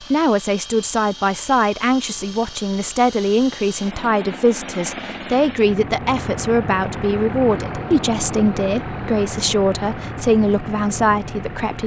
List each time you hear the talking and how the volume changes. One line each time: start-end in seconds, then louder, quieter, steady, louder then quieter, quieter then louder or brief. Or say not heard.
0.1-11.8 steady.